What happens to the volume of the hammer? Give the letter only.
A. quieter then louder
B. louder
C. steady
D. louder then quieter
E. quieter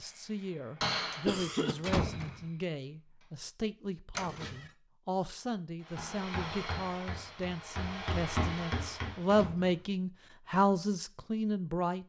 A.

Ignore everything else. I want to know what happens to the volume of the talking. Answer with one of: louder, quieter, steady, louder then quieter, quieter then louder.
louder.